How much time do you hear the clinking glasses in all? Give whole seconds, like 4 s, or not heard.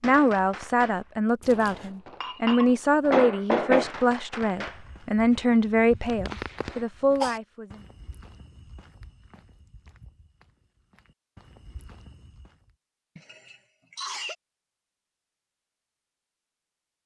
2 s.